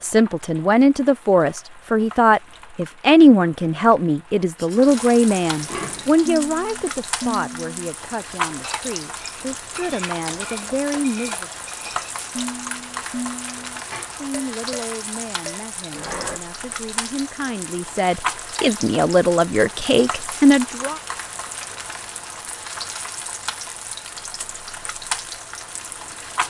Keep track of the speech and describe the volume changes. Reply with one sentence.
The volume of the speech goes down, then up.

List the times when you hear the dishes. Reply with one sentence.
The dishes can be heard from 4.6 to 16.4 s.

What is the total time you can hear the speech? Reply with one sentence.
You can hear the speech for 18 seconds altogether.